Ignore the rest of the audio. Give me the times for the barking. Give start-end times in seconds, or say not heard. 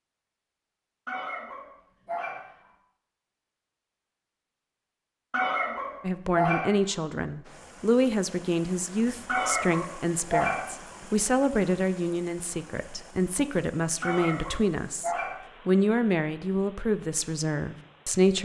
1.1-2.5, 5.3-6.7, 9.2-10.7, 14.0-15.4.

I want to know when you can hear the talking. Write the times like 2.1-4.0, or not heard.
6.0-18.3.